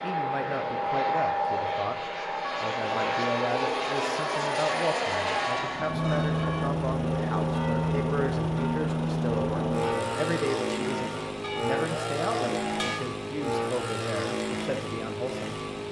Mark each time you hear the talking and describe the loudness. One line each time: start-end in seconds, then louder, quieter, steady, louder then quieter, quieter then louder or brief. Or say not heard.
0.0-15.7 steady.